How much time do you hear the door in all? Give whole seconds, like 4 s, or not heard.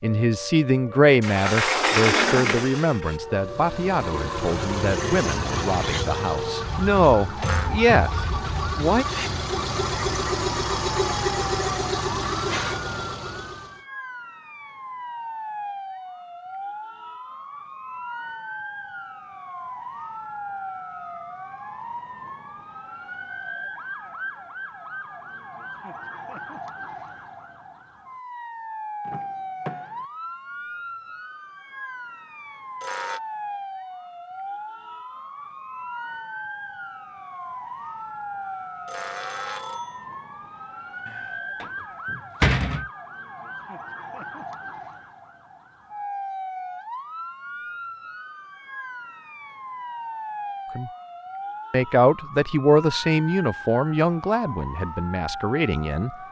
5 s.